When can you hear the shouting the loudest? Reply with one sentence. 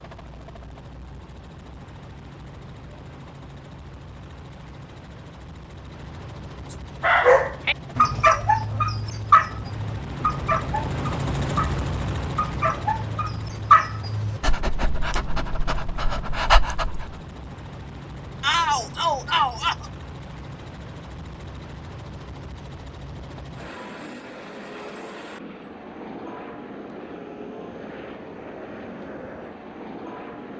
The volume of the shouting peaks at 19 seconds.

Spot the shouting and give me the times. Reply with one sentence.
You can hear the shouting from 18.4 to 19.9 s.